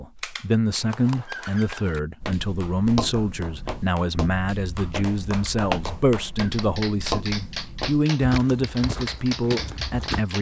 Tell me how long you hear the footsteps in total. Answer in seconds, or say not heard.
8 s.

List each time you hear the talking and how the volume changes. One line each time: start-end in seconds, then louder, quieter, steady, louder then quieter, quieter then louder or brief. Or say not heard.
0.0-10.3 steady.